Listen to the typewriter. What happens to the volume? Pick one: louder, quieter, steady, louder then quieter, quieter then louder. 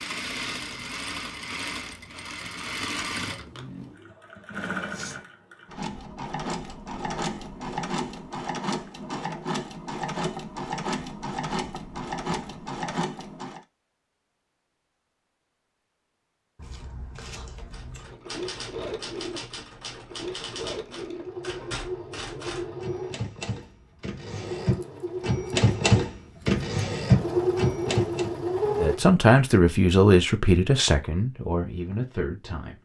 louder.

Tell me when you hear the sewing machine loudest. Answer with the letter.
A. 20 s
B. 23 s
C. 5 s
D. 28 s
D.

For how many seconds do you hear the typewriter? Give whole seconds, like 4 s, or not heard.
11 s.